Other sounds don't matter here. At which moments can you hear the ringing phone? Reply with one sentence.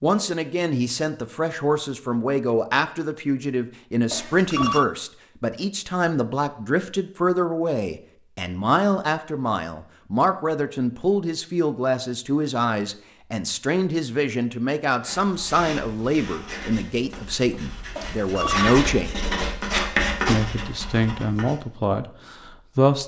The ringing phone can be heard from 4.1 to 4.8 s and from 17.9 to 18.8 s.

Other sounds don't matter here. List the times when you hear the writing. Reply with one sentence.
You can hear the writing from 15.0 to 21.6 s.